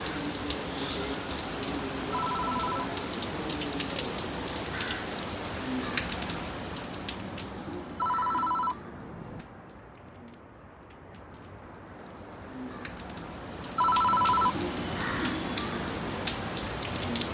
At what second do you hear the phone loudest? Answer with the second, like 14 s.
14 s.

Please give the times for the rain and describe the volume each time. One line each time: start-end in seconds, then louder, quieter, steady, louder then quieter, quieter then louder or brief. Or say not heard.
0.0-17.2 quieter then louder.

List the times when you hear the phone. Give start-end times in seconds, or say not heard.
2.1-2.9, 8.0-9.4, 13.8-15.2.